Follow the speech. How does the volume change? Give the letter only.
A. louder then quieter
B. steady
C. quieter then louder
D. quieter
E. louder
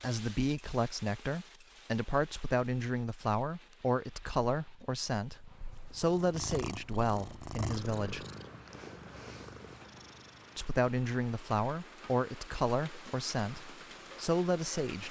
B.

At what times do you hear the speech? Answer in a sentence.
The speech can be heard from 0.0 to 8.2 s and from 10.6 to 15.0 s.